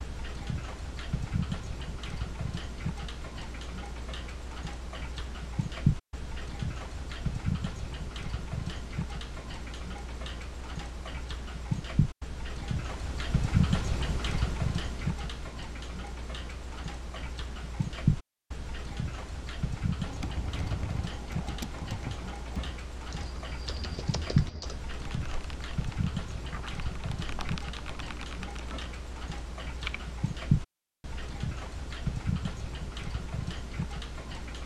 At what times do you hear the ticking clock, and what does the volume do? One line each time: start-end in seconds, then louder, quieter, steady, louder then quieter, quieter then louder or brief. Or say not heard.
0.0-34.6 steady.